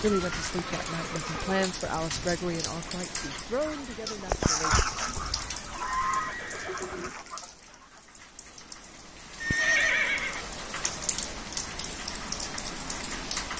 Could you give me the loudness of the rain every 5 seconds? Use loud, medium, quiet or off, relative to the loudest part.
loud, medium, loud.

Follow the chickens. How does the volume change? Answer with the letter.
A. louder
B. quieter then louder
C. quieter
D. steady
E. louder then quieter
C.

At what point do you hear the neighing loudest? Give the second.
10 s.